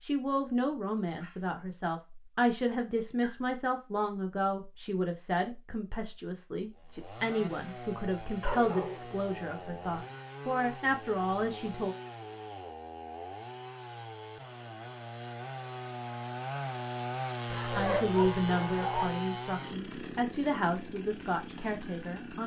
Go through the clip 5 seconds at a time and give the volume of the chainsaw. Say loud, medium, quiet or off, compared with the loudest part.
off, medium, medium, loud, medium.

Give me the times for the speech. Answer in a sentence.
The speech can be heard from 0.0 to 11.9 s and from 17.8 to 22.4 s.